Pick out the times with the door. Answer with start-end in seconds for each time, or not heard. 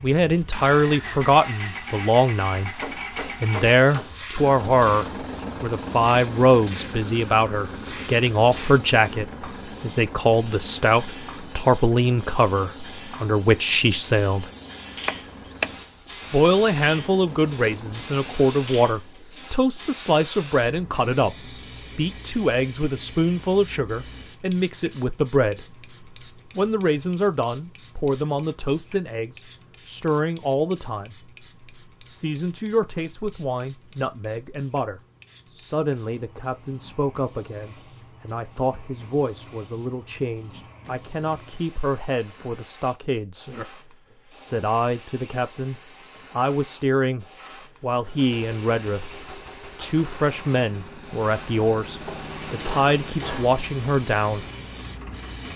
15.1-15.8.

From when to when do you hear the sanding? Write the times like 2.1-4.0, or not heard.
not heard.